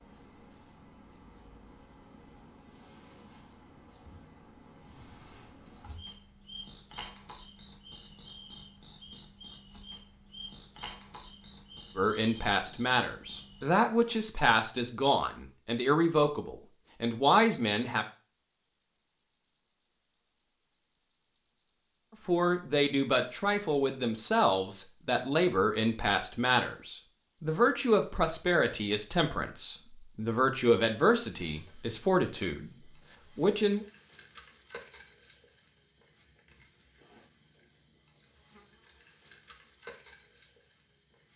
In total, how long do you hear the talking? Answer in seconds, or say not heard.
18 s.